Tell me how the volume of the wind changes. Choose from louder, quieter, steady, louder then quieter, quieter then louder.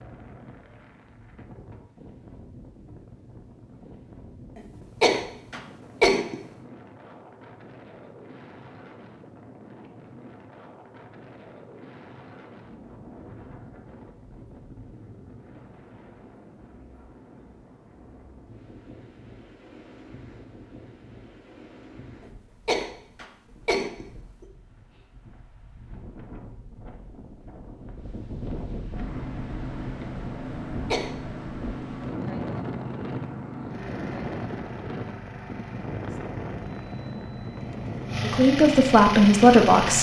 louder.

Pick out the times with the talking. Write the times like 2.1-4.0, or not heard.
38.2-39.9.